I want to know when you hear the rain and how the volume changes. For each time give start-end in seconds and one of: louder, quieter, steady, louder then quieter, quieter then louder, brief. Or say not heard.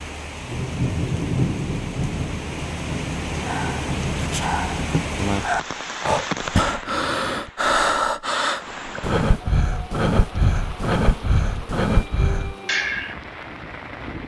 0.0-14.2 quieter.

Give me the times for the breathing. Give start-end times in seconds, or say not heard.
3.5-13.2.